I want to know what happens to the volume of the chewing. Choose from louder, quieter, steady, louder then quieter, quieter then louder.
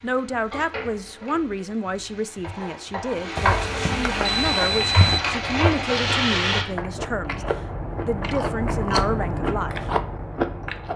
louder.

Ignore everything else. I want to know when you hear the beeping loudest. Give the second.
5 s.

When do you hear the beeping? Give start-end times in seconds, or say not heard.
3.4-5.2.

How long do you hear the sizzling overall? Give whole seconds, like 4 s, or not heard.
7 s.